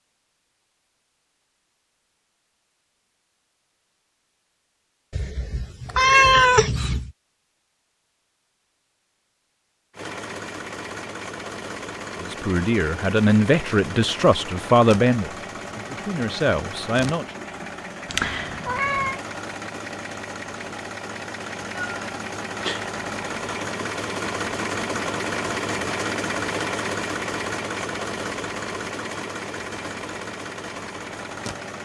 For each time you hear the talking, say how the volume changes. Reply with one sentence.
The talking can be heard from 12.2 to 17.2 s, getting quieter then louder.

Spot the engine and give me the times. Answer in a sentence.
You can hear the engine from 9.9 to 31.7 s.